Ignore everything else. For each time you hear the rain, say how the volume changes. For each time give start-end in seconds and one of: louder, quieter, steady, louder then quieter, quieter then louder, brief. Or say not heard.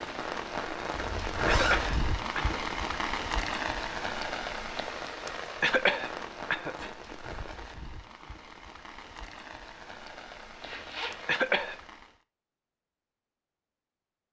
0.0-12.2 quieter.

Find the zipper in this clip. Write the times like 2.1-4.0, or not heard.
0.9-2.1, 6.8-7.3, 10.6-11.3.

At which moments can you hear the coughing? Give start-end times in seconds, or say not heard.
1.4-2.6, 5.6-6.8, 11.2-11.8.